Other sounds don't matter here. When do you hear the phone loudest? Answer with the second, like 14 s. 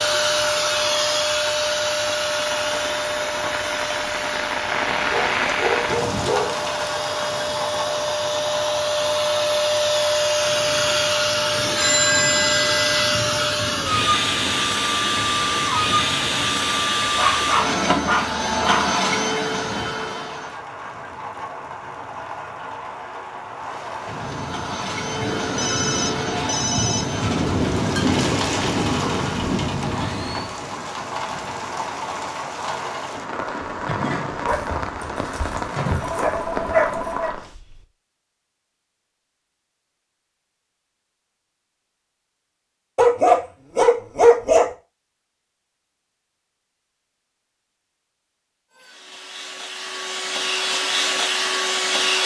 12 s.